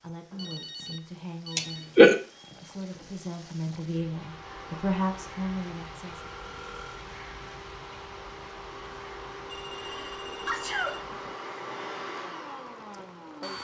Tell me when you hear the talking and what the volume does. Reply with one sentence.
You can hear the talking from 0.0 to 6.3 s, getting louder.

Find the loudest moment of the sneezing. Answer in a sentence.
The volume of the sneezing peaks at 2 seconds.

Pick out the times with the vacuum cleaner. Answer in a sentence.
You can hear the vacuum cleaner from 4.0 to 13.5 s.